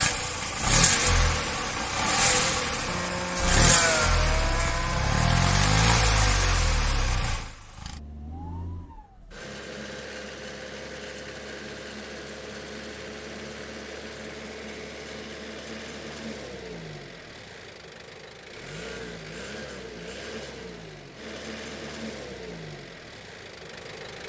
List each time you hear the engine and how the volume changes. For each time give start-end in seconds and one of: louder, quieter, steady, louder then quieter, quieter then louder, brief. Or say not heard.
0.0-24.2 quieter.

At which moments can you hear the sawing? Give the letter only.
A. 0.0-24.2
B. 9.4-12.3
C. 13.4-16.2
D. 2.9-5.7
D.